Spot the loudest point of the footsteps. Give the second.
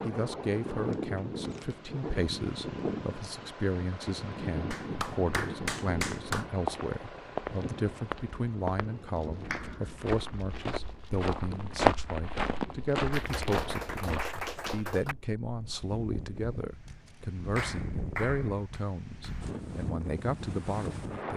12 s.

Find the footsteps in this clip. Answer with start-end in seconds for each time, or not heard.
6.0-14.9.